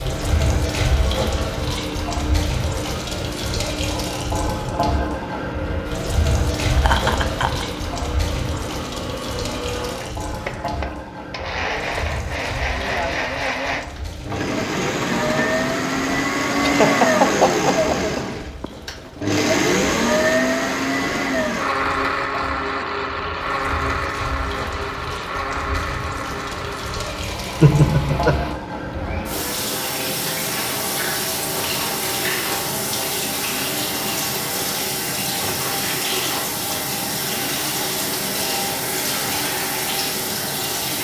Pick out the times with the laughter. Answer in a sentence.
The laughter can be heard from 6.8 to 7.7 s, from 16.6 to 18.6 s and from 27.6 to 28.4 s.